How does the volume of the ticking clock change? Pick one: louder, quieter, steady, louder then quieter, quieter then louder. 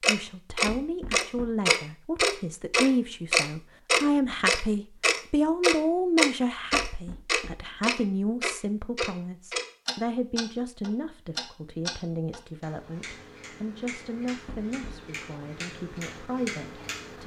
quieter.